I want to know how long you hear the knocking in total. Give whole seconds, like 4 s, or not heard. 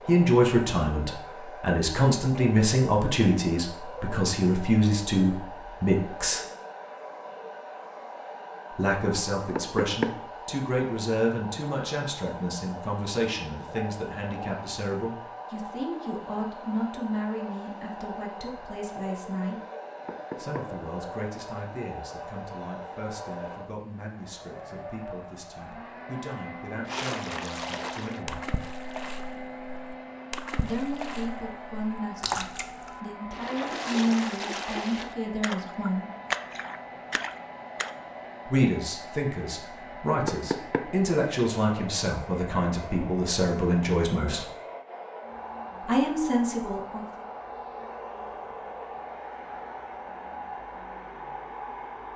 2 s.